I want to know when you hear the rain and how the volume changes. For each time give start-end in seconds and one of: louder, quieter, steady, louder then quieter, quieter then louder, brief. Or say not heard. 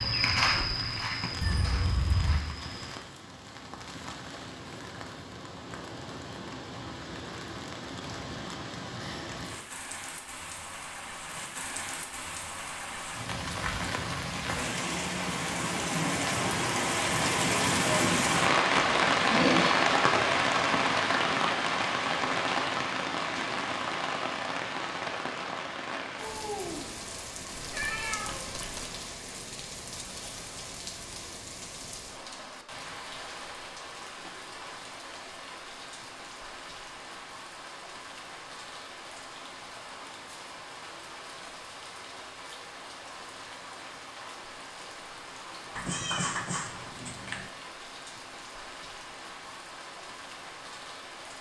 0.1-51.3 louder then quieter.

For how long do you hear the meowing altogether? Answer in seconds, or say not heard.
4 s.